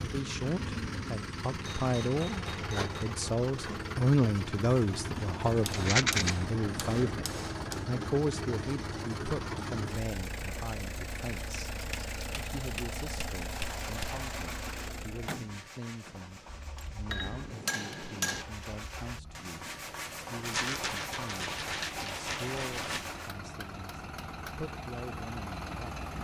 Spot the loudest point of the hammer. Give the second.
18 s.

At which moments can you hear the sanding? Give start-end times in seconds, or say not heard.
13.5-23.4.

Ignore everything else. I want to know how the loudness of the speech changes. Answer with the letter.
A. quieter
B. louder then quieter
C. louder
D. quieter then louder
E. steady
A.